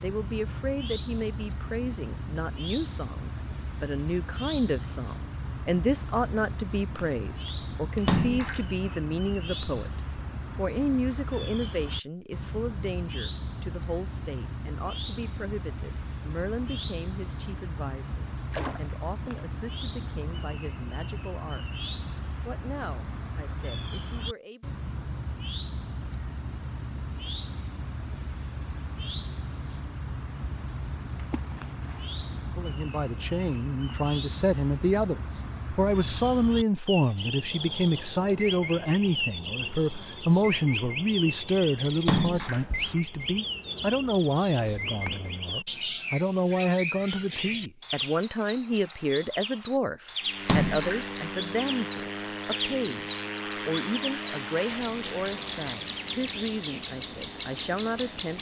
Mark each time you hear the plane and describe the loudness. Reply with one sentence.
The plane can be heard from 50.2 to 58.3 s, getting quieter.